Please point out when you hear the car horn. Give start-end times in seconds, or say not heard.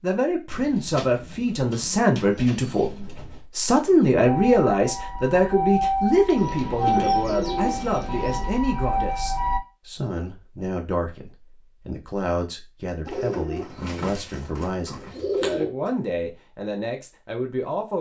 not heard.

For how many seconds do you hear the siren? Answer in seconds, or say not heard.
5 s.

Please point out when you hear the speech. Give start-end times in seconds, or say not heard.
0.0-17.9.